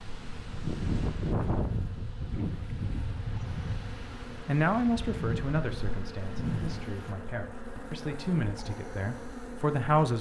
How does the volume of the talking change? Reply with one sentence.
The volume of the talking goes down, then up.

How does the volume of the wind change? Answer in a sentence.
The loudness of the wind goes down.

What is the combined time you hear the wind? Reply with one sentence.
You can hear the wind for 7 seconds altogether.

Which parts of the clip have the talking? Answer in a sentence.
You can hear the talking from 4.5 to 10.1 s.